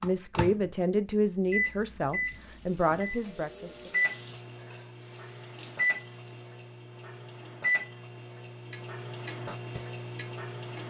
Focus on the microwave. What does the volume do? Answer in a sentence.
The volume of the microwave goes down.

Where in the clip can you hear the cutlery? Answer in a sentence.
The cutlery can't be heard in this clip.